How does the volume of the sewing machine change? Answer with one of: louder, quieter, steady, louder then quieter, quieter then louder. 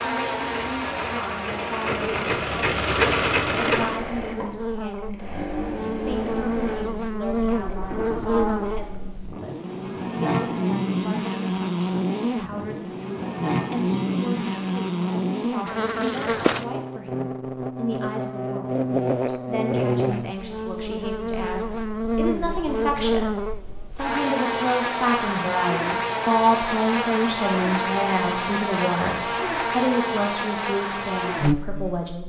louder then quieter.